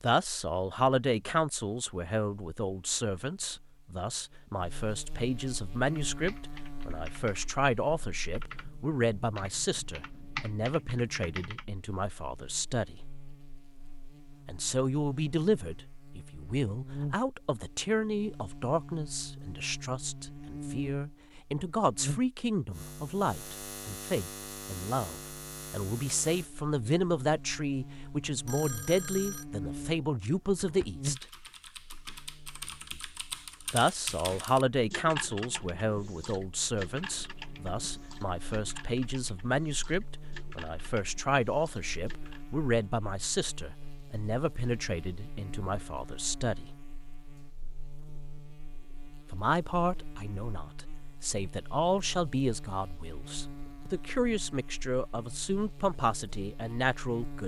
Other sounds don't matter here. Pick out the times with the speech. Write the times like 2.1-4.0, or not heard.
0.0-12.9, 14.4-31.2, 33.7-46.6, 49.3-57.4.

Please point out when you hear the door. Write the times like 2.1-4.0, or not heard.
not heard.